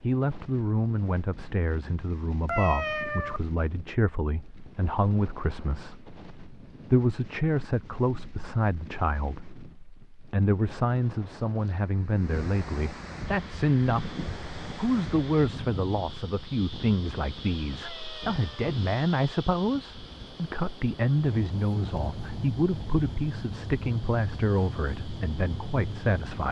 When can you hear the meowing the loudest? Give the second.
3 s.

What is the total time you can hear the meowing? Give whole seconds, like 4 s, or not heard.
2 s.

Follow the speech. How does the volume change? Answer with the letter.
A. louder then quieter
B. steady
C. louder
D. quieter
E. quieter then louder
B.